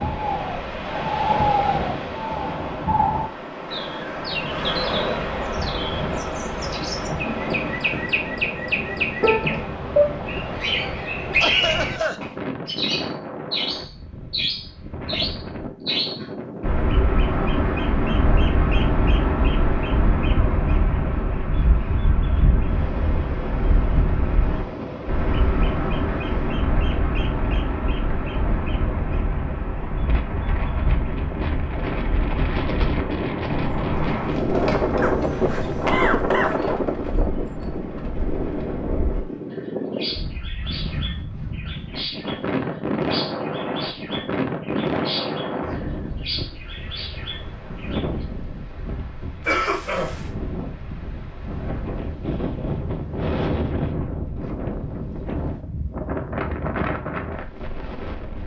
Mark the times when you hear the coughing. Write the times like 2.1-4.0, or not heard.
11.4-12.2, 35.0-36.5, 49.5-50.2.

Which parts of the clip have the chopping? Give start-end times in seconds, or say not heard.
not heard.